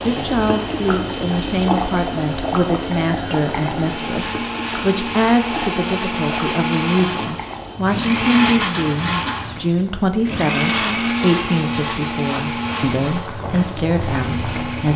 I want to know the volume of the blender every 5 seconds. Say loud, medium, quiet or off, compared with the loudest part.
medium, loud, loud.